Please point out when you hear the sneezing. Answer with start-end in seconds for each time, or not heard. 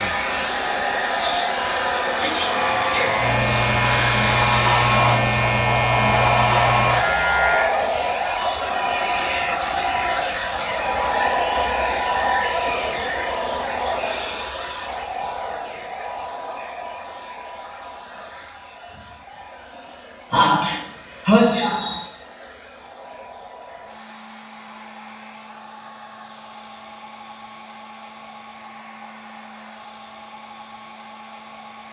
2.0-3.2, 20.3-22.1.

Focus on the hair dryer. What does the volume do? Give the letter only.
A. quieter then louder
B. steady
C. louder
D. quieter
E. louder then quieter
D.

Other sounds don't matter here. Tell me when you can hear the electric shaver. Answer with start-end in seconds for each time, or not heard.
2.5-7.7.